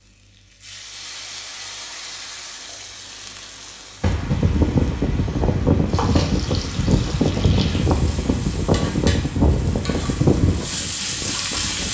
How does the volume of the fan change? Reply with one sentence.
The loudness of the fan stays about the same.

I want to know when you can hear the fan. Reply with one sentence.
You can hear the fan from 4.1 to 11.8 s.